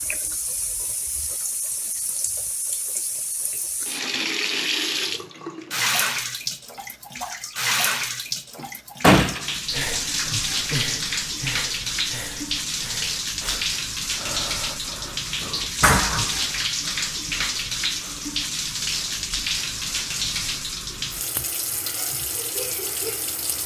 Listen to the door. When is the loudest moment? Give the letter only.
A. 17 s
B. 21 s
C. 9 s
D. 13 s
C.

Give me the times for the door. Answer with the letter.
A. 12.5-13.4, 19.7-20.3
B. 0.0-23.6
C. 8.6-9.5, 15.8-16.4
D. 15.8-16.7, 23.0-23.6
C.